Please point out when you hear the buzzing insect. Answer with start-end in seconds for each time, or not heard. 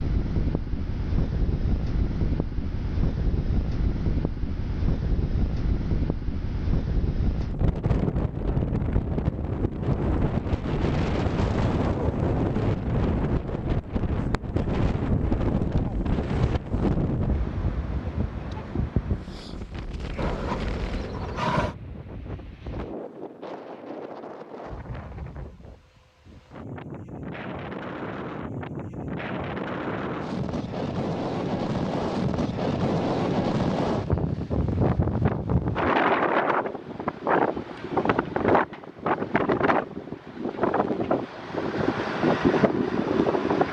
20.1-21.8.